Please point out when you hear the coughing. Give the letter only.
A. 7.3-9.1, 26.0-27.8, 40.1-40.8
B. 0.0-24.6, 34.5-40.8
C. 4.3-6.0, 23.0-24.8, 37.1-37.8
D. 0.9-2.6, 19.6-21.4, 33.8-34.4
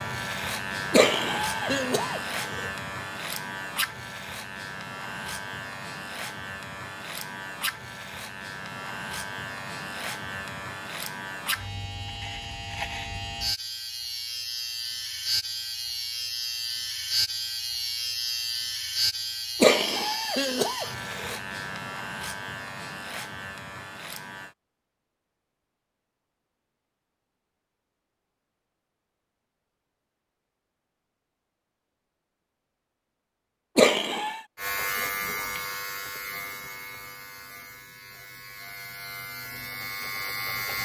D.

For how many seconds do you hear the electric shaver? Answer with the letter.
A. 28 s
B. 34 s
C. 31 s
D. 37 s
C.